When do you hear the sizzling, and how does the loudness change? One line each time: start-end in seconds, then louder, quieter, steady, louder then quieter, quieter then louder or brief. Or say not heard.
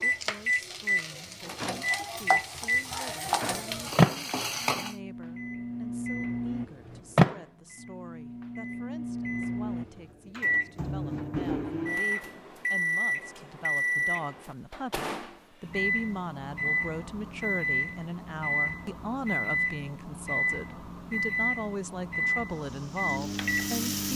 0.0-5.0 louder
22.4-24.1 brief.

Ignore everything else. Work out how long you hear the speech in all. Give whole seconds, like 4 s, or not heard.
24 s.